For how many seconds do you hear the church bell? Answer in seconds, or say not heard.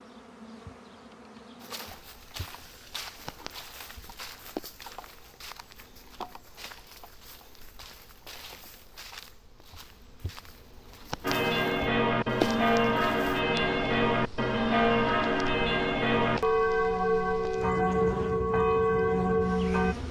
9 s.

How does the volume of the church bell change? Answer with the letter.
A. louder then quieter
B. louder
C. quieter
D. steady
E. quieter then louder
D.